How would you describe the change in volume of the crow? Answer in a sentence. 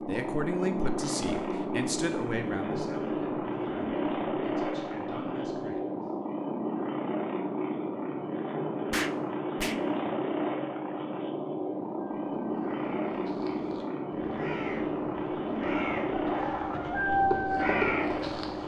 The loudness of the crow goes up.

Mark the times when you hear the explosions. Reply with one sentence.
The explosions can be heard from 8.9 to 9.8 s.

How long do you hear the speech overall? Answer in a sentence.
The speech can be heard for 6 seconds in total.